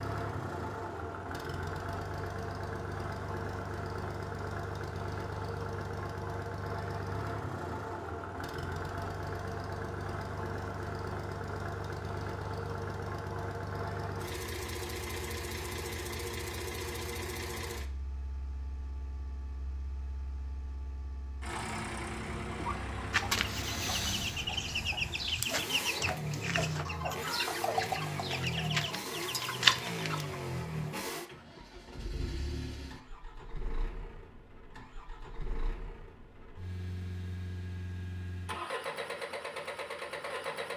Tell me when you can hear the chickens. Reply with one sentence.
You can hear the chickens from 22.5 to 30.4 s.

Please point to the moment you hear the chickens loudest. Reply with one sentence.
The loudest moment of the chickens is at 30 seconds.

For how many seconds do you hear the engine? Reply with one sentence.
You can hear the engine for 41 seconds altogether.